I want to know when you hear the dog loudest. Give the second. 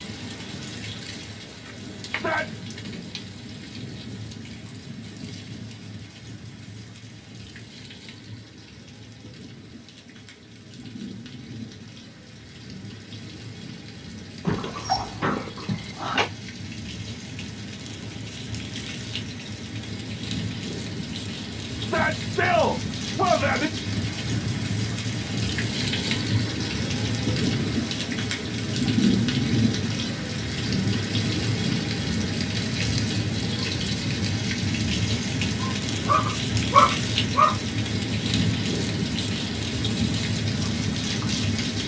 37 s.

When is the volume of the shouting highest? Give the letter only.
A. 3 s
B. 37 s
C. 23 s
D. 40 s
C.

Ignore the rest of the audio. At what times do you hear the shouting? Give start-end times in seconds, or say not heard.
2.0-2.6, 21.8-23.7.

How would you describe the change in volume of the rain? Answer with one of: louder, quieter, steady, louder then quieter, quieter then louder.
louder.